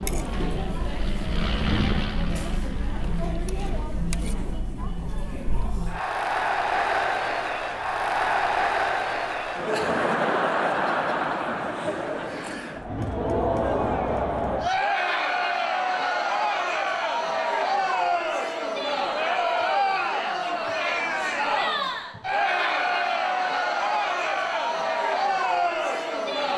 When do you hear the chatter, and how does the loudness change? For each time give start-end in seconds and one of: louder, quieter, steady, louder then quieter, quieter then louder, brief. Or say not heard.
0.0-26.5 louder.